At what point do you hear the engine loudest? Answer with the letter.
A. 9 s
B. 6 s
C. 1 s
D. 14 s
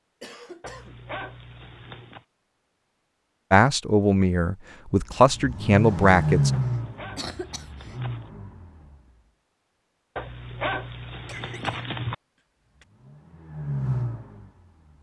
B.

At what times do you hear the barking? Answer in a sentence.
The barking can be heard from 0.6 to 2.2 s, from 6.5 to 8.3 s and from 10.2 to 12.2 s.